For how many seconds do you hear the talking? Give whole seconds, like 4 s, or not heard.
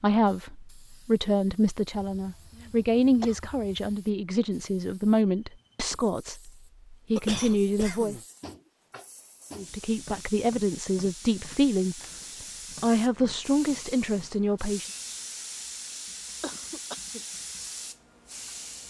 13 s.